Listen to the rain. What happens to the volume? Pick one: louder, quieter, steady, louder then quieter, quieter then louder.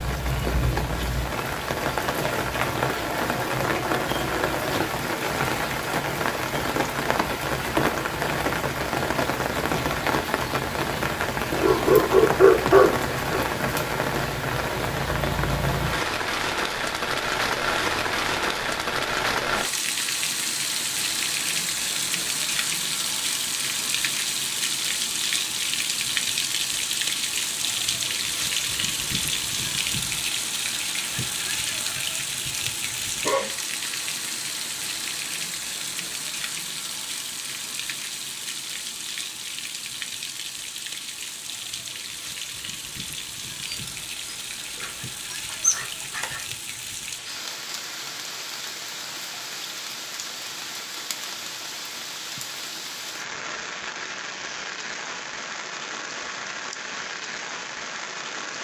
quieter.